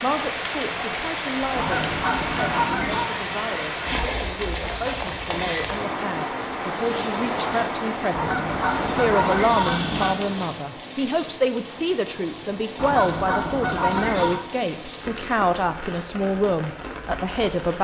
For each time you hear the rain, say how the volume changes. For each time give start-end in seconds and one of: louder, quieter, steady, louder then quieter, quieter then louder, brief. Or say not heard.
0.0-17.8 quieter.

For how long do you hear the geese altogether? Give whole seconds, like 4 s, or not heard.
5 s.